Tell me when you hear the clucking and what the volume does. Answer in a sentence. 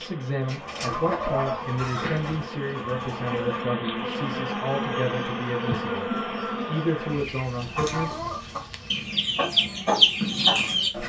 The clucking can be heard from 0.5 to 11.0 s, getting quieter then louder.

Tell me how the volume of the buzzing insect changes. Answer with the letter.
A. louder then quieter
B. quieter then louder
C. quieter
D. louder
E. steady
A.